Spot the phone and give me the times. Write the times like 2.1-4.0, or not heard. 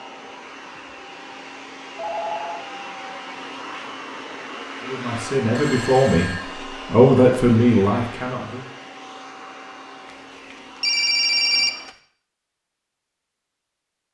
1.9-2.6, 5.5-6.5, 10.5-11.9.